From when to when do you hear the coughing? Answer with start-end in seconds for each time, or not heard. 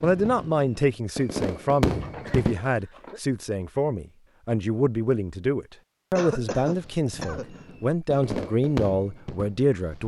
2.0-3.2, 6.2-7.5.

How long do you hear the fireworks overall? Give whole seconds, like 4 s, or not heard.
6 s.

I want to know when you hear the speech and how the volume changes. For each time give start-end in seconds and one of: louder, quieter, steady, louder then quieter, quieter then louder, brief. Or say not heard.
0.0-10.0 steady.